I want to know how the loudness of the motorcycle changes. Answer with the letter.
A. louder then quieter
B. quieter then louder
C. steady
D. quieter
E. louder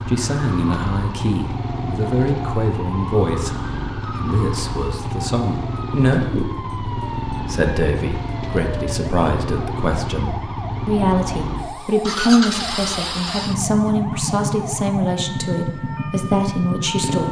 C.